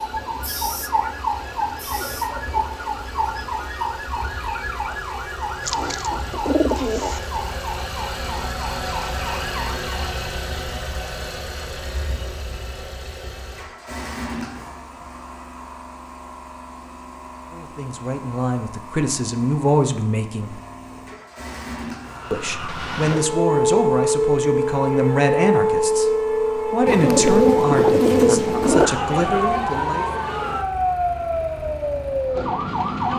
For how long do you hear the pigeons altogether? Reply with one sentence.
The pigeons can be heard for 4 seconds in total.